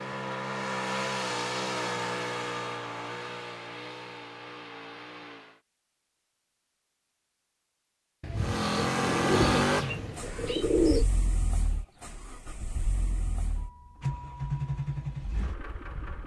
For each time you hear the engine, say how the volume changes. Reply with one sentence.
The engine can be heard from 0.0 to 5.6 s, getting quieter; and from 8.3 to 16.2 s, getting quieter then louder.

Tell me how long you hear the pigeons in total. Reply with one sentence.
The pigeons can be heard for 3 seconds in total.